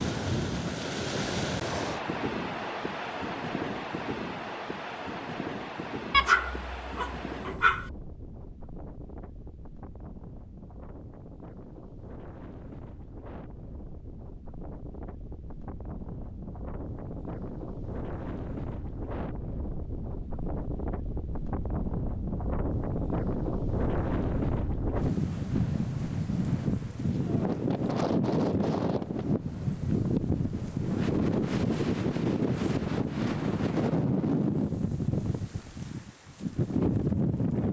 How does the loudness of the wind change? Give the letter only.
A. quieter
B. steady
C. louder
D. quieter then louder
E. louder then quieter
D.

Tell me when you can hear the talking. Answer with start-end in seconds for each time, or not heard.
not heard.